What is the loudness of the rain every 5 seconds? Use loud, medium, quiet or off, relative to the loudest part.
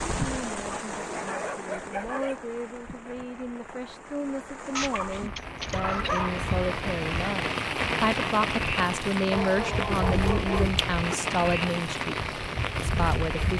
medium, loud, loud.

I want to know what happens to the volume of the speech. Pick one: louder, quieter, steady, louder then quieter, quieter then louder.
louder.